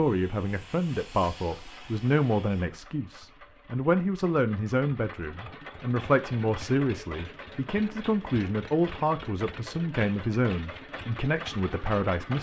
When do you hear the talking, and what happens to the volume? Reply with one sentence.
You can hear the talking from 0.0 to 12.3 s, at a steady volume.